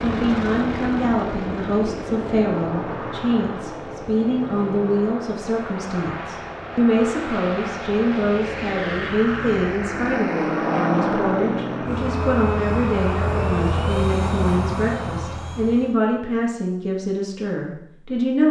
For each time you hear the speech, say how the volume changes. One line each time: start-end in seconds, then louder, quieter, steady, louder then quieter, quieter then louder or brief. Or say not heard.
0.0-18.4 steady.